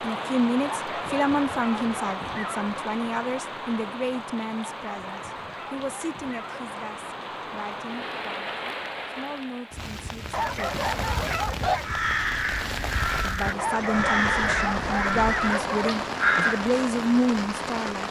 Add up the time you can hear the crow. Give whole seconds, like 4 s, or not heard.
5 s.